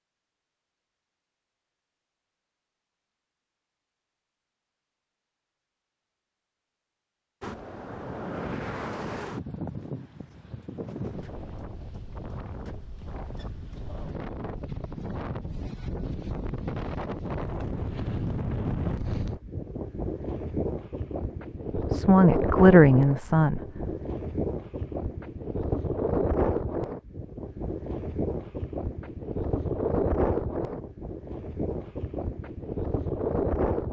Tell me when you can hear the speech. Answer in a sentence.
The speech can be heard from 21.8 to 23.9 s.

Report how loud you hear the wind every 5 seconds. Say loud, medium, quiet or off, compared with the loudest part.
off, medium, medium, loud, loud, loud, loud.